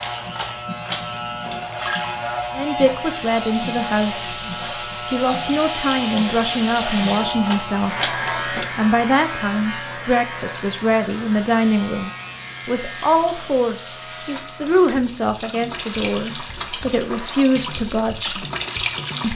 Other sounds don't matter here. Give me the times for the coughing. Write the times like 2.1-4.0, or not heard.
not heard.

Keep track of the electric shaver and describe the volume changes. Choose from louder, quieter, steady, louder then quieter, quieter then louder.
quieter.